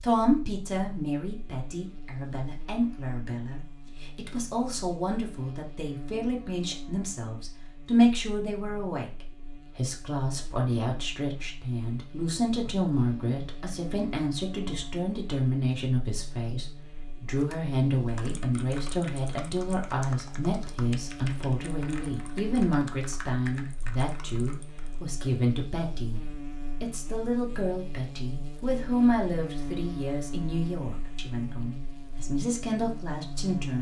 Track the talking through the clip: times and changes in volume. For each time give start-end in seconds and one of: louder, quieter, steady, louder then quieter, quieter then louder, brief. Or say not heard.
0.0-9.1 louder
9.8-33.7 steady.